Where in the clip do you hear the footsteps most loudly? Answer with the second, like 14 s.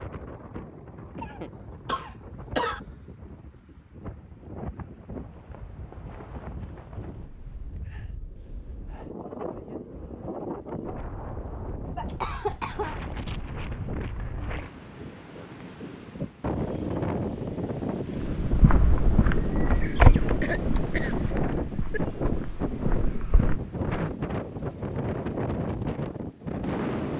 20 s.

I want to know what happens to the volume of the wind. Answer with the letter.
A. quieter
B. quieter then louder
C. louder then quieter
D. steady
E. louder
E.